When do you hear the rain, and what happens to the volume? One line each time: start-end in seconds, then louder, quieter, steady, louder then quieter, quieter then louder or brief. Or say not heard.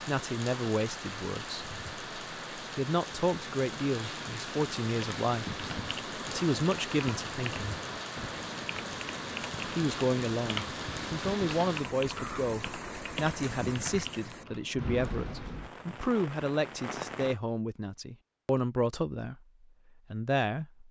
0.0-17.4 steady.